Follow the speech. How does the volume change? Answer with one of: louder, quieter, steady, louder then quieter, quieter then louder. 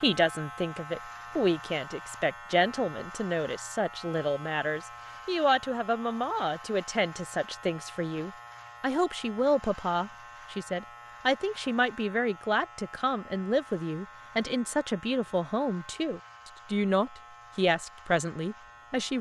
steady.